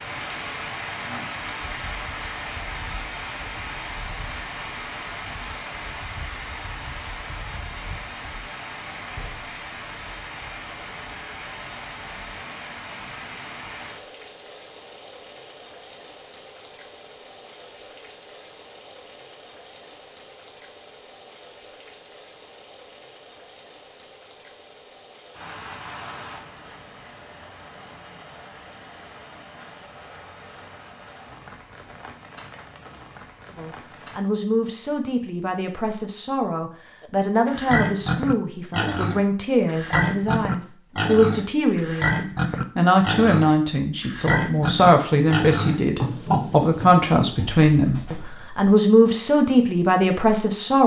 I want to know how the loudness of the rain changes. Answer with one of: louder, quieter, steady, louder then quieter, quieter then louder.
quieter.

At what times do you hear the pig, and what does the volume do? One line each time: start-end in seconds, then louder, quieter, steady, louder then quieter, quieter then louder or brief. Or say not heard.
37.5-47.1 steady.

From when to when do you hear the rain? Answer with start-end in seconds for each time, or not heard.
0.0-34.2.